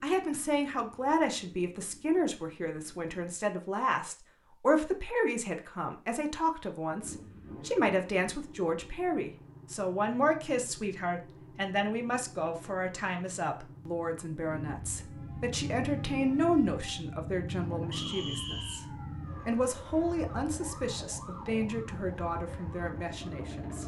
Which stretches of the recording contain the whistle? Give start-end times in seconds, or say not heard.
17.9-18.9.